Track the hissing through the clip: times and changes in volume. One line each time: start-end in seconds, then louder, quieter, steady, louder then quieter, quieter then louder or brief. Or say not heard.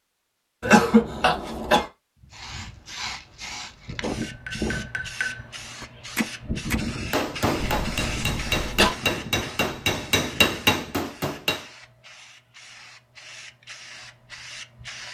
2.3-15.0 quieter.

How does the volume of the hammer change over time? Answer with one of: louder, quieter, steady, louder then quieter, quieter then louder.
louder.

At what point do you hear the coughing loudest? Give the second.
1 s.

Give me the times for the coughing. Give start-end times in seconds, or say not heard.
0.6-1.9, 7.6-8.9.